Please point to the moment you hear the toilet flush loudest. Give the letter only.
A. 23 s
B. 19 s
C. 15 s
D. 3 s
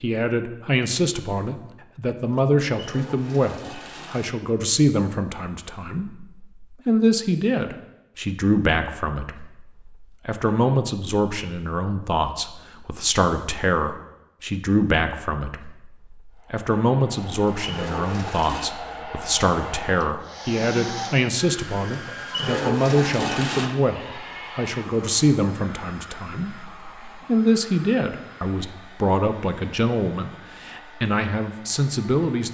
A.